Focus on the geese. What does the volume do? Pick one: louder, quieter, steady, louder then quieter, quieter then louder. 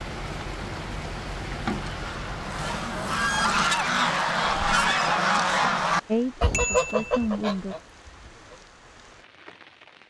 louder then quieter.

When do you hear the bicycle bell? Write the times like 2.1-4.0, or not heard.
6.5-7.2.